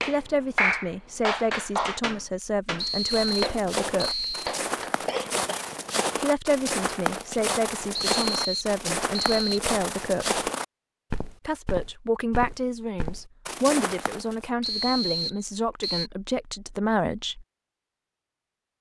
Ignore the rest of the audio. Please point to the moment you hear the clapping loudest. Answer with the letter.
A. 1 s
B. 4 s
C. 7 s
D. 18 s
A.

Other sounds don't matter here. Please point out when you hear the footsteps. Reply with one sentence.
You can hear the footsteps from 3.0 to 14.5 s.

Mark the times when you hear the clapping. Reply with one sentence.
The clapping can be heard from 0.0 to 5.3 s.